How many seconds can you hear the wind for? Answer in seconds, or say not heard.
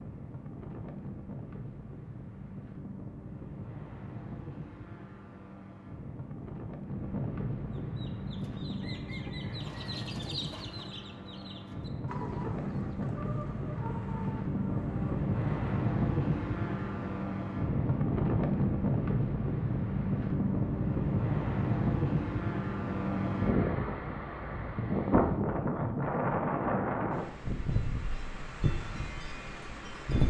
30 s.